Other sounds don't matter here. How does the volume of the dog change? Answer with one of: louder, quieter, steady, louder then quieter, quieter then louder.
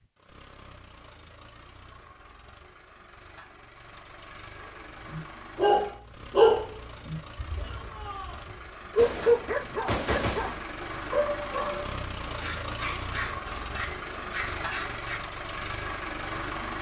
quieter.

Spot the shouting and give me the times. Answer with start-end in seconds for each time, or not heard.
7.5-8.4.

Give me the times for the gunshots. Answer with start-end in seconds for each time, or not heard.
8.9-10.7.